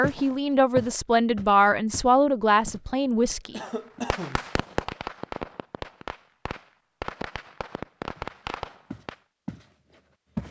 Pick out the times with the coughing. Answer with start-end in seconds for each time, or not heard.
3.5-4.5.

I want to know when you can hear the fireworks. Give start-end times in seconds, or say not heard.
4.1-9.2.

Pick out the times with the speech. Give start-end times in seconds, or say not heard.
0.0-3.6.